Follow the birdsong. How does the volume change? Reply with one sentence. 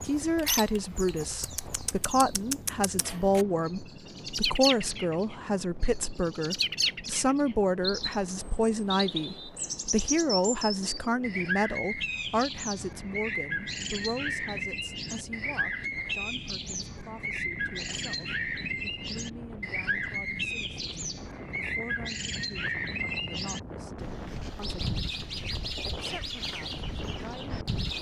The loudness of the birdsong stays about the same.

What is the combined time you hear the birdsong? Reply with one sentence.
You can hear the birdsong for 28 seconds altogether.